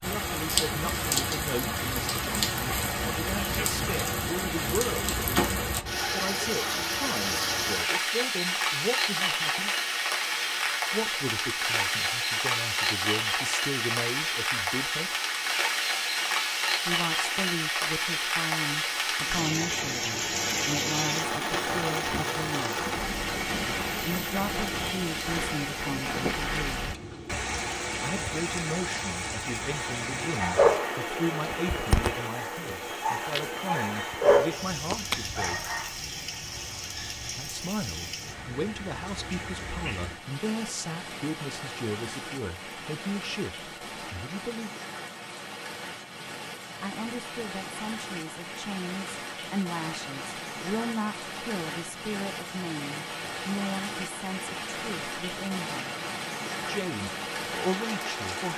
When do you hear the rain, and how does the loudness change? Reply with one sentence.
You can hear the rain from 0.0 to 58.5 s, getting quieter.